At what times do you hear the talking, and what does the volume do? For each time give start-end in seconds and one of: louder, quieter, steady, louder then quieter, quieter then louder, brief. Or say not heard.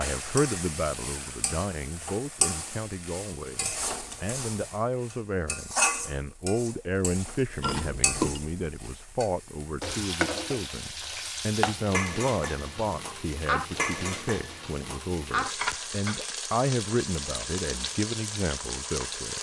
0.0-19.3 steady.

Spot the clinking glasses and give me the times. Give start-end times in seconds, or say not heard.
7.6-8.4.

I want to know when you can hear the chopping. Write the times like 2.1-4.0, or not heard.
not heard.